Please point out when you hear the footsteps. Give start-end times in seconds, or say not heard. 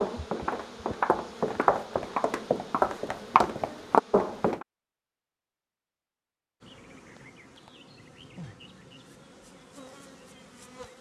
0.0-4.7.